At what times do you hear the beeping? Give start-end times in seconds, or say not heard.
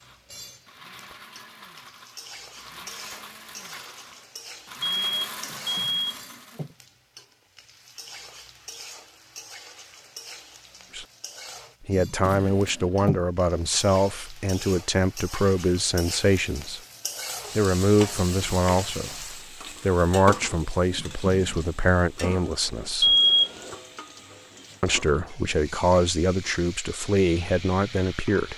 4.8-6.2, 23.0-23.6.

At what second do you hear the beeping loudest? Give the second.
23 s.